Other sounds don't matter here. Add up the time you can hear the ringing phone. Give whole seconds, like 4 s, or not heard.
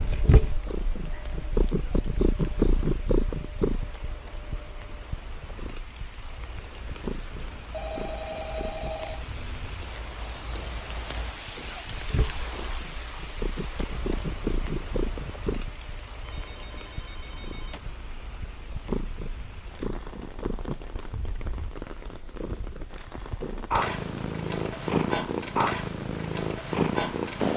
3 s.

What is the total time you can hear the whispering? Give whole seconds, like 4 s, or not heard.
not heard.